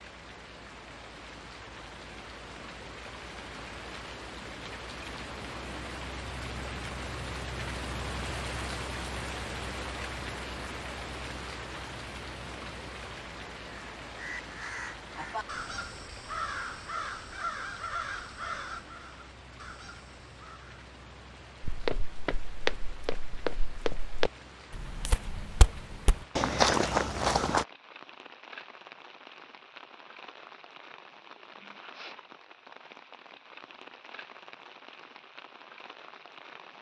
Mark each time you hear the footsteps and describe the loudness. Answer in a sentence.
The footsteps can be heard from 21.6 to 27.6 s, getting louder.